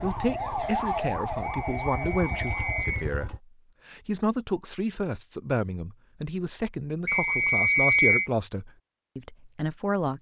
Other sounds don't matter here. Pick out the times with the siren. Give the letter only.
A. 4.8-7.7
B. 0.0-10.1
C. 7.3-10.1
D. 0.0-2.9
D.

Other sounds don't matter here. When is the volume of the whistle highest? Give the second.
8 s.